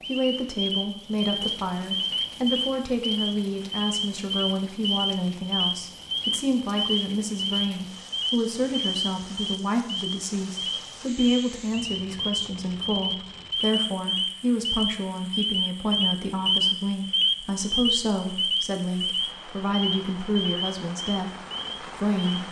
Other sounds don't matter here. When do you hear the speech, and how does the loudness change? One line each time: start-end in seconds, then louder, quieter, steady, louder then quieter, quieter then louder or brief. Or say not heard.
0.1-22.4 steady.